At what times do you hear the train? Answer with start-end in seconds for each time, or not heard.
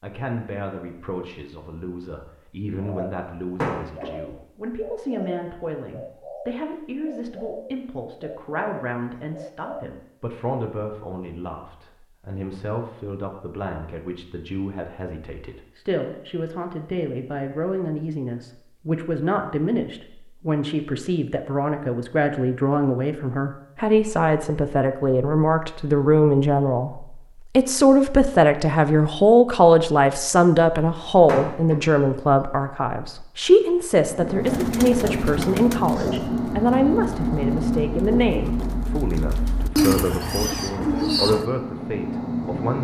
34.0-42.7.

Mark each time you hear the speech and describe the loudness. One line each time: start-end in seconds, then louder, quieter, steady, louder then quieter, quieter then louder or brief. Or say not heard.
0.0-42.7 louder then quieter.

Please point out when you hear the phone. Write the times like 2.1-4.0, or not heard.
not heard.